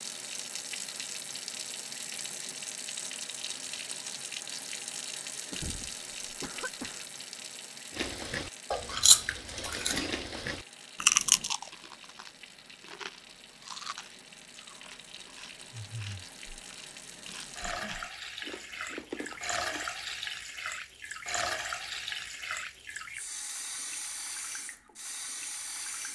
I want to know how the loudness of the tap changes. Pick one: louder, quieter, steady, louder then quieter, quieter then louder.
quieter then louder.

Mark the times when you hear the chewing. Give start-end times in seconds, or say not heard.
8.0-19.9.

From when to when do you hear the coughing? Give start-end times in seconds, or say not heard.
5.5-7.0.